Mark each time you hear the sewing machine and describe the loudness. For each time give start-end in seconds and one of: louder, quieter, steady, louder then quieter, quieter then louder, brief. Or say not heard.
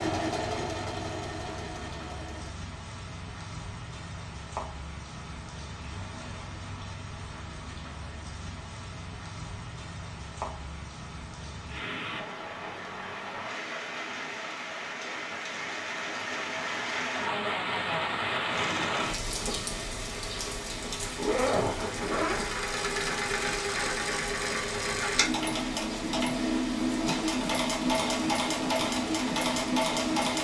0.0-2.5 brief
18.5-30.3 louder.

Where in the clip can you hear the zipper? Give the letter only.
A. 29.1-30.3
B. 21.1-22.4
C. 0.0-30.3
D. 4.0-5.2
B.